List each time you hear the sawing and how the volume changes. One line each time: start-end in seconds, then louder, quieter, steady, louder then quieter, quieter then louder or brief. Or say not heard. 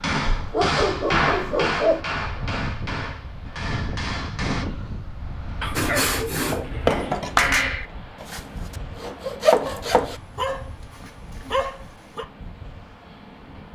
5.8-10.2 quieter then louder.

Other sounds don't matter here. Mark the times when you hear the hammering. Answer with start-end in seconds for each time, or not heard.
0.0-4.7.